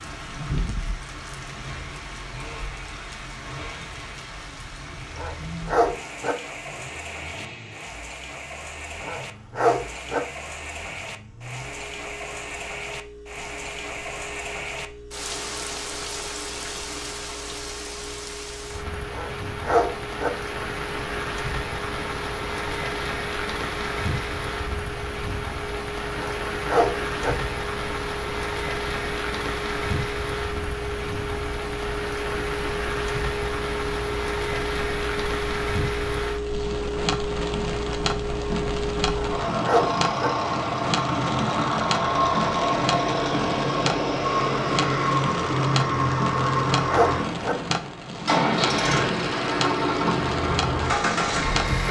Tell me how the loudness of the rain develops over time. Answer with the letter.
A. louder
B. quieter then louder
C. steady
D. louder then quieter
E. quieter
A.